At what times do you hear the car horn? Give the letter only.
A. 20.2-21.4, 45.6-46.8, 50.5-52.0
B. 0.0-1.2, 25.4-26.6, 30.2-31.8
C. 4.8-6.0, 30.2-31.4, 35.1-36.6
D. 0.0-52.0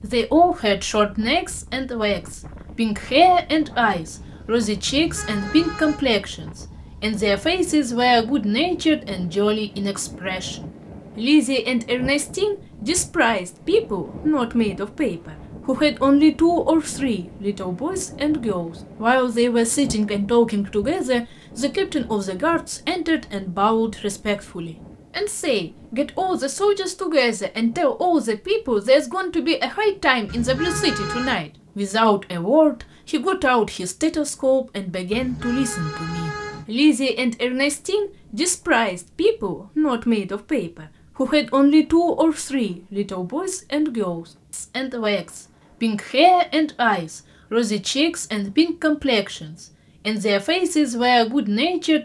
C.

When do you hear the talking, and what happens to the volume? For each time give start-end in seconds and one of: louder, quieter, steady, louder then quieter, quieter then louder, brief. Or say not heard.
0.0-52.0 steady.